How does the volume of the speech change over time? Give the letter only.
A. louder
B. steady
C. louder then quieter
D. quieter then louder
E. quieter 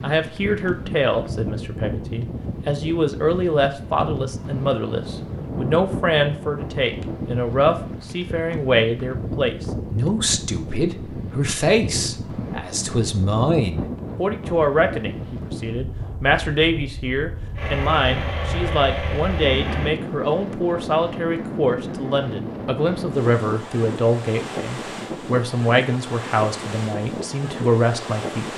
B.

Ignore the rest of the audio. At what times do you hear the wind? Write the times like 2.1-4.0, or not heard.
0.0-28.5.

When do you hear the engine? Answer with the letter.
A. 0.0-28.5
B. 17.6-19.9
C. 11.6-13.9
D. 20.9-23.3
B.